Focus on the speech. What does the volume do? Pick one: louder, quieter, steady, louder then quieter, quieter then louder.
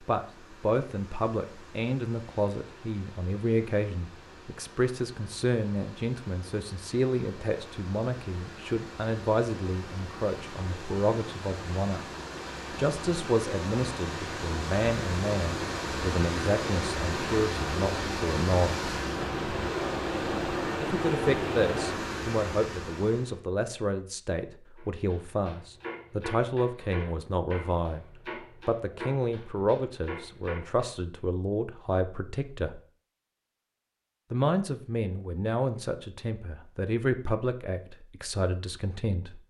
steady.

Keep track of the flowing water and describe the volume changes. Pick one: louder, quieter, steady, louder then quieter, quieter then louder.
louder.